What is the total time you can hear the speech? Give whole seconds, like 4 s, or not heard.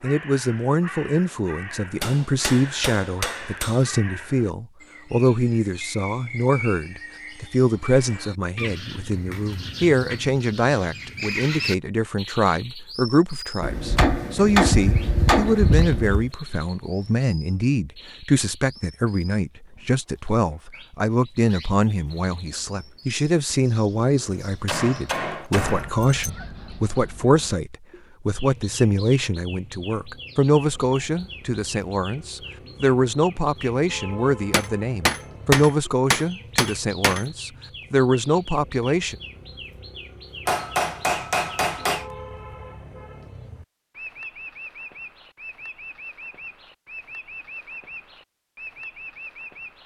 39 s.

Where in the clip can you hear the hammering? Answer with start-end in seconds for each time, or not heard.
2.0-3.9, 13.6-16.3, 24.6-26.3, 34.5-37.2, 40.5-42.0.